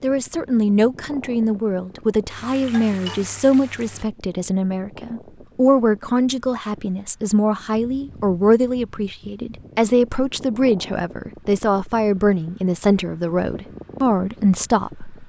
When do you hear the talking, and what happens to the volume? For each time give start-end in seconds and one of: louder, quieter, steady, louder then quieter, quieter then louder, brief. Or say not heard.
0.0-15.2 steady.